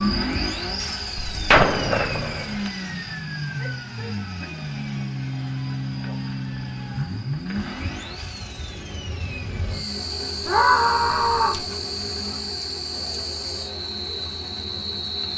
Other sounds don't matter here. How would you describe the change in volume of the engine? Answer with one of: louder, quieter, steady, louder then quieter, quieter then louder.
quieter.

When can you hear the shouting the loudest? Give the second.
11 s.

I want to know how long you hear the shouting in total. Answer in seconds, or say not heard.
2 s.